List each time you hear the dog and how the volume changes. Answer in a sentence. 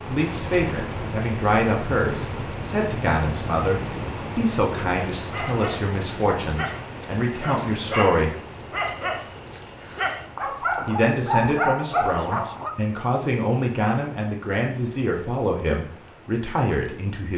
You can hear the dog from 5.2 to 12.7 s, getting louder.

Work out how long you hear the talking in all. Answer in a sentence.
The talking can be heard for 15 seconds in total.